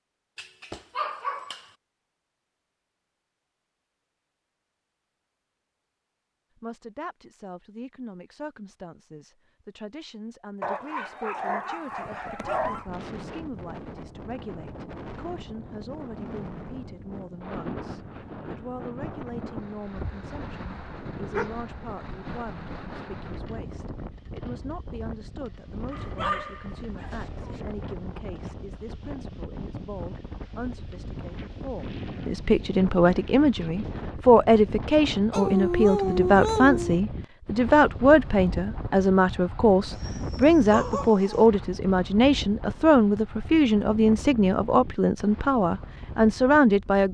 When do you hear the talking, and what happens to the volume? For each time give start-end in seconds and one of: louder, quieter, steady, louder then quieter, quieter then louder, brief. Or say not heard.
6.5-47.0 louder.